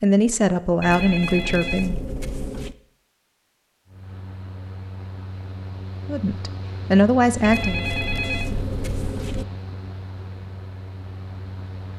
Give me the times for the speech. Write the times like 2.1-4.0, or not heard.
0.0-2.0, 6.0-7.8.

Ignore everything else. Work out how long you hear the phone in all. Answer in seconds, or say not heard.
4 s.